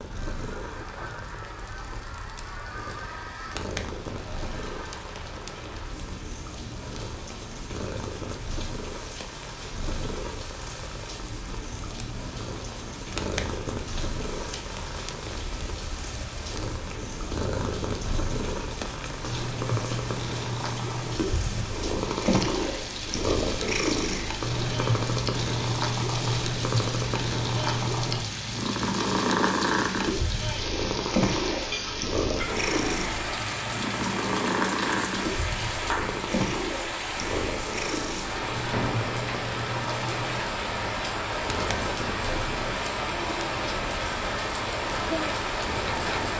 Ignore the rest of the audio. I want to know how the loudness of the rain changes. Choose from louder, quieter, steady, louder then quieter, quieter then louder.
louder.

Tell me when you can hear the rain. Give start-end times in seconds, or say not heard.
0.0-46.3.